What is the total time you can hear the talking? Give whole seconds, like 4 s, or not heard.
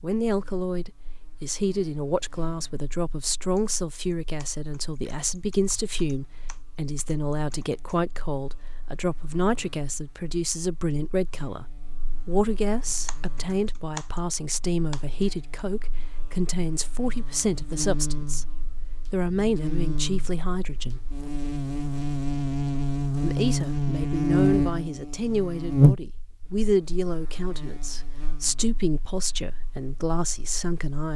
28 s.